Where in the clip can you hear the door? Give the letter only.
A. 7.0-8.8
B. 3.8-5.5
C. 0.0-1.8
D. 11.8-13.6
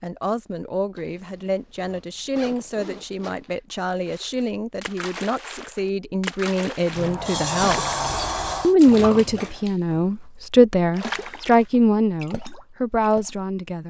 A.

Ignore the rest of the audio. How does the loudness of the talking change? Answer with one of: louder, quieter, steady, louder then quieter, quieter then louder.
louder.